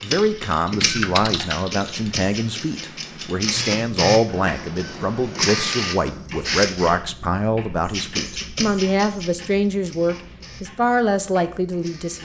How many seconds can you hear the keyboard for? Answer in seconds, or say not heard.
2 s.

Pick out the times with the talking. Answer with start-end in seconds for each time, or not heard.
0.0-12.2.